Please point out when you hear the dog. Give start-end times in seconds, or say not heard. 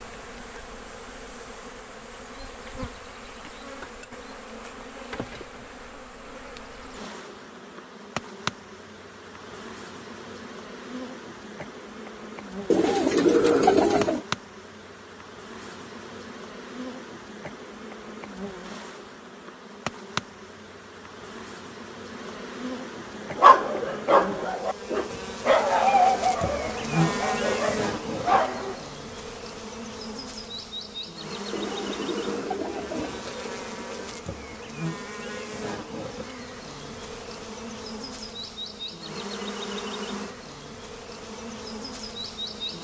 23.4-28.8.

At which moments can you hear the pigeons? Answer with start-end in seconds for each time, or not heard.
12.7-14.2, 31.5-33.5.